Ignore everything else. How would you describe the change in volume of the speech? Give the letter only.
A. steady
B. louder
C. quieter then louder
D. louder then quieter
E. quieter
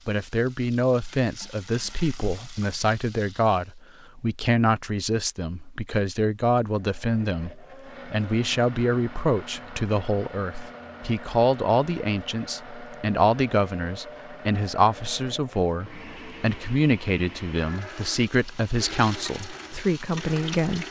A.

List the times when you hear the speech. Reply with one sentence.
You can hear the speech from 0.1 to 20.8 s.